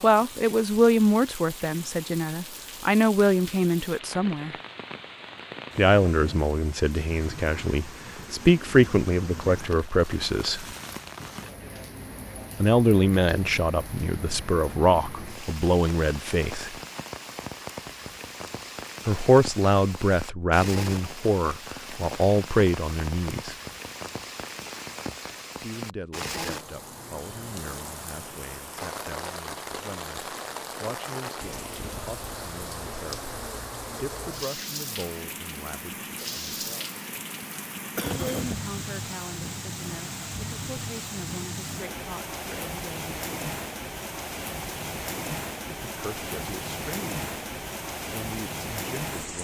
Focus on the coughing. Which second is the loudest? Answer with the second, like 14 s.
38 s.